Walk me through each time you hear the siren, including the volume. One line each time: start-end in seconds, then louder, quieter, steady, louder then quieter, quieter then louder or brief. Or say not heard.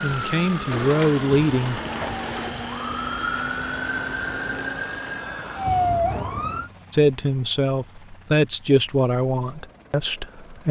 0.0-6.7 louder.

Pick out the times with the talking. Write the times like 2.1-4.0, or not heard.
0.0-1.8, 6.9-10.6.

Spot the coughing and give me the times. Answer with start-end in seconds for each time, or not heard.
not heard.